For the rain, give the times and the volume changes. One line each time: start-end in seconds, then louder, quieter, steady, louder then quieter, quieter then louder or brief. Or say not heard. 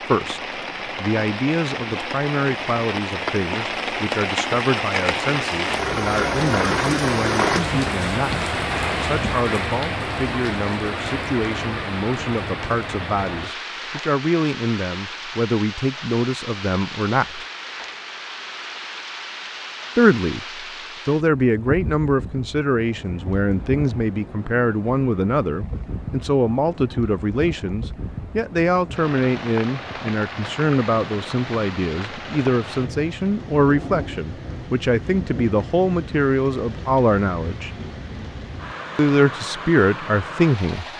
0.0-40.9 quieter.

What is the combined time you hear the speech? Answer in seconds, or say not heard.
37 s.